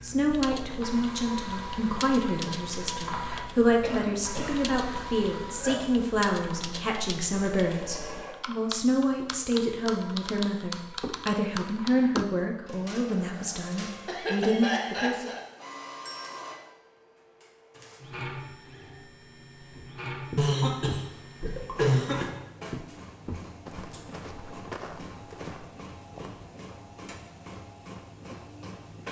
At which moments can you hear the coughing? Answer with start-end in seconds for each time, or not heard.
3.8-4.6, 5.4-5.8, 14.1-15.4, 20.4-22.2.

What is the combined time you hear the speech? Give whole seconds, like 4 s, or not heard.
15 s.